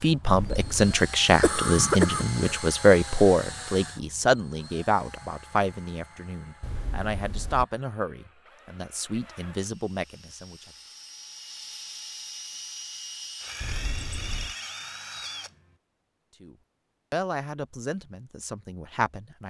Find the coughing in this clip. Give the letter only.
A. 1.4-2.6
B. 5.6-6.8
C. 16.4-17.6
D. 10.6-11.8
A.